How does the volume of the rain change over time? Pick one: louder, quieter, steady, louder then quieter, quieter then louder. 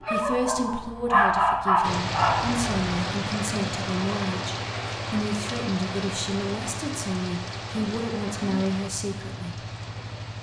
quieter.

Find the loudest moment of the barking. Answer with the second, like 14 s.
1 s.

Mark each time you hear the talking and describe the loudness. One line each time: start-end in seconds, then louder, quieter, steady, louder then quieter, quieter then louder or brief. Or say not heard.
0.0-9.6 steady.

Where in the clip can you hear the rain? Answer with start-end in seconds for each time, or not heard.
1.8-10.3.